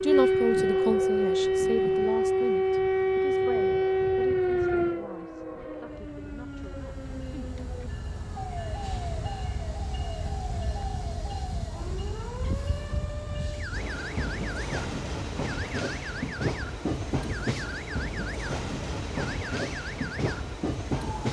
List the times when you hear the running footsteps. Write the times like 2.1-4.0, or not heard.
not heard.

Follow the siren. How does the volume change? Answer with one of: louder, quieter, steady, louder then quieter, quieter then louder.
quieter.